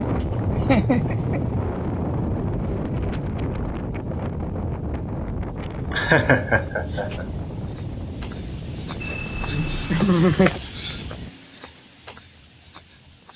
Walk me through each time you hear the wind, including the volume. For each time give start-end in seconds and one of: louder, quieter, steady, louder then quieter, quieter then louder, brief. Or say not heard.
0.0-11.3 quieter.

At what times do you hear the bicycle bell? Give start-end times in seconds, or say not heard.
9.0-10.1.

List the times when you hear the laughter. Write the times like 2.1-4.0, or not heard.
0.2-1.4, 5.9-7.2, 9.9-10.6.